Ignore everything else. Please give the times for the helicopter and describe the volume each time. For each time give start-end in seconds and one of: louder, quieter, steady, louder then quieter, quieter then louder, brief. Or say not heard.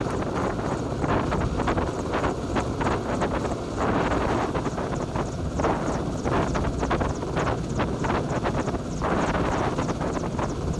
0.0-10.7 steady.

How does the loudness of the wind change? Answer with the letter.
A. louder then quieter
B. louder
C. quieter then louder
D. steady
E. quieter
D.